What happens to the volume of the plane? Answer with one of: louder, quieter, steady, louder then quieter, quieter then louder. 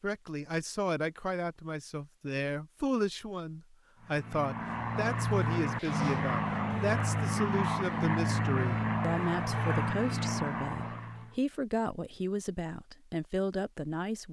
steady.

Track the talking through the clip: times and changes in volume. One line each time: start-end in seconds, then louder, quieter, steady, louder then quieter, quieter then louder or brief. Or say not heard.
0.0-14.2 steady.